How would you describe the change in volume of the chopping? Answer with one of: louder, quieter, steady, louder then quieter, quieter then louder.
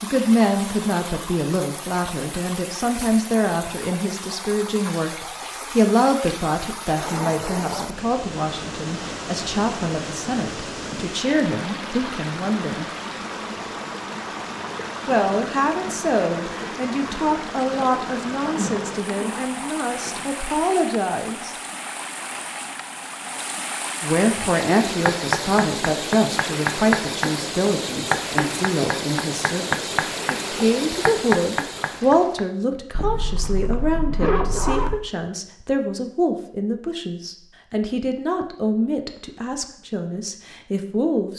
steady.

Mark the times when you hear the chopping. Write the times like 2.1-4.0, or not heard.
24.4-32.4.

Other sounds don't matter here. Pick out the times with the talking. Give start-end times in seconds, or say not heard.
0.0-12.8, 15.1-21.6, 24.0-41.3.